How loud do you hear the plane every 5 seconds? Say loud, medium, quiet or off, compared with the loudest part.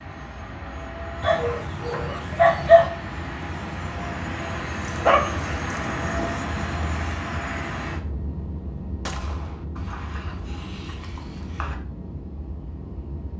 loud, loud, medium.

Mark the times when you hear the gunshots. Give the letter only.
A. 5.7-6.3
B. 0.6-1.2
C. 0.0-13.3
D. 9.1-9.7
D.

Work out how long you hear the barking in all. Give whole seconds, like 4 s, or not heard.
6 s.